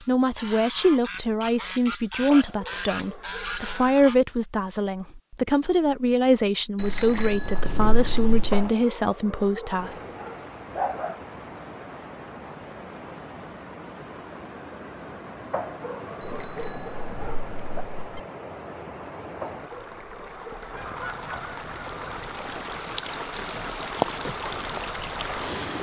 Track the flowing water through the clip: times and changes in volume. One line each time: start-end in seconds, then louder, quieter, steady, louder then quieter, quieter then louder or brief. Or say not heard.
9.8-25.7 louder.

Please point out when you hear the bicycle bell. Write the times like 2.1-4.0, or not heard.
6.8-8.7, 16.2-18.2.